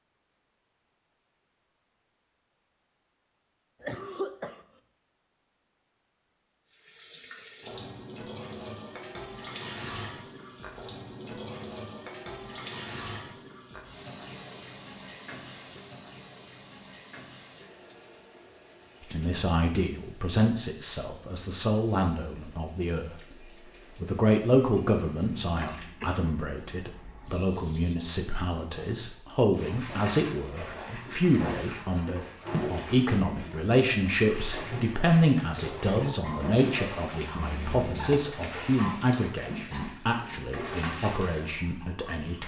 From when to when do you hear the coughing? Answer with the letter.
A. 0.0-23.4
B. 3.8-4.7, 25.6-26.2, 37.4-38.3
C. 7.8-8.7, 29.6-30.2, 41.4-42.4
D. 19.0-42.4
B.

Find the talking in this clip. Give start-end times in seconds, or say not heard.
19.0-42.4.